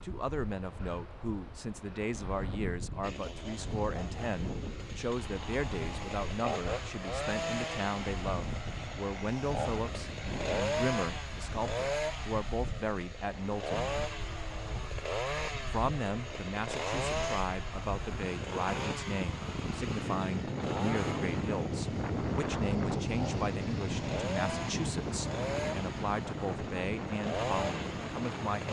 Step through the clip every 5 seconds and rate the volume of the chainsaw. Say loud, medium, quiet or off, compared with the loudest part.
medium, loud, loud, loud, medium, loud.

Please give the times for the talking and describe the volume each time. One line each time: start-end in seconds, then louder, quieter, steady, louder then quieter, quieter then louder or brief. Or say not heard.
0.0-13.9 steady
15.7-28.6 steady.